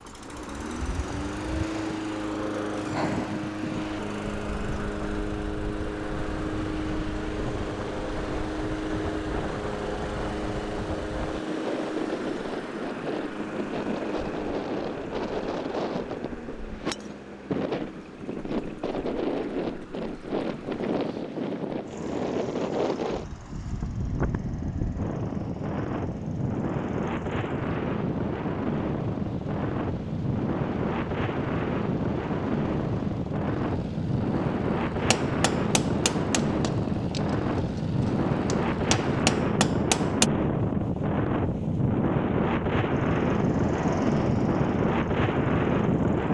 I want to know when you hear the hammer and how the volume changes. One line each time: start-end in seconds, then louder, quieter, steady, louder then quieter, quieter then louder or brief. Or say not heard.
35.1-40.2 quieter then louder.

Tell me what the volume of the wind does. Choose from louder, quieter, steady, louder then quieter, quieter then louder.
louder.